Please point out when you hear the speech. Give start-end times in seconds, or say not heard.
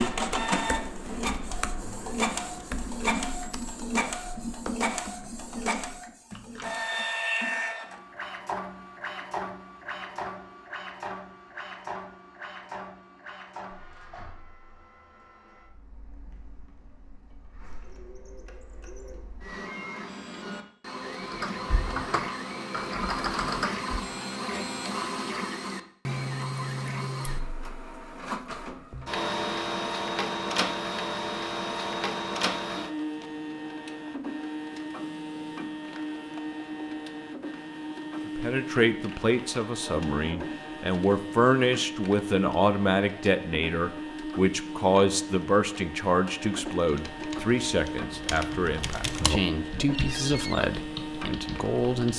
38.2-52.1.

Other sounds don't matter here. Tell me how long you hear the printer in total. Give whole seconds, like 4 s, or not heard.
52 s.